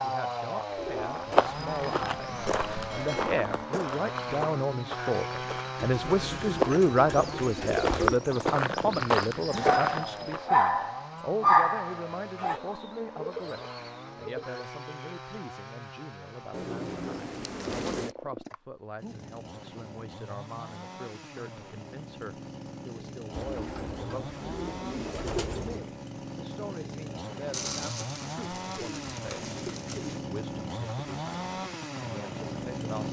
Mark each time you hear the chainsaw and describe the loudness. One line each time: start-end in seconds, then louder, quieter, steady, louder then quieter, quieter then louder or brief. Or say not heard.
0.0-33.0 quieter then louder.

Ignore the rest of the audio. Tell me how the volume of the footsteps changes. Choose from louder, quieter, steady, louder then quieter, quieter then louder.
quieter then louder.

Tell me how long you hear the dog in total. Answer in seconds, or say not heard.
3 s.